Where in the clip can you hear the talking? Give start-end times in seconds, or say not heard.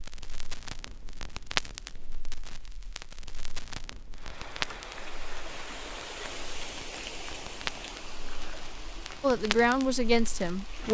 9.2-10.9.